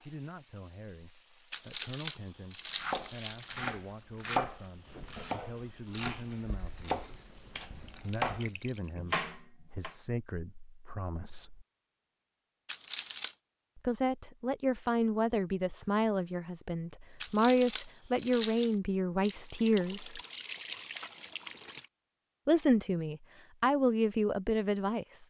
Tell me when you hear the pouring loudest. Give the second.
21 s.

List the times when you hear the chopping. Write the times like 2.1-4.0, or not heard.
2.7-9.9.